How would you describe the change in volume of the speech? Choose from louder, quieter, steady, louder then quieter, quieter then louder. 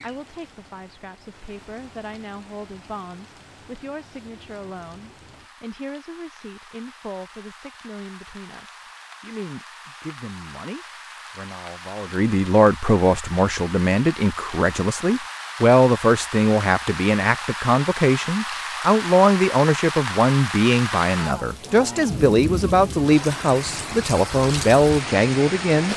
louder.